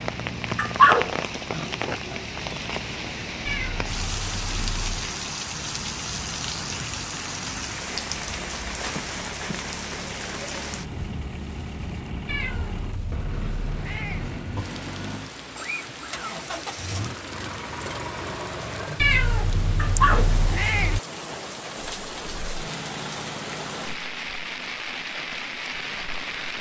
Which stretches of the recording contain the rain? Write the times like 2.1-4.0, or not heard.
0.0-26.5.